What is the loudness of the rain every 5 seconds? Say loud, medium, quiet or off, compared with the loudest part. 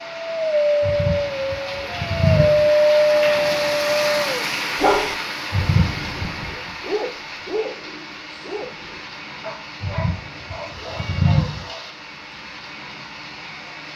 loud, medium, medium.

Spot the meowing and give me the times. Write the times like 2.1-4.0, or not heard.
0.8-2.7, 5.5-6.7, 9.8-11.7.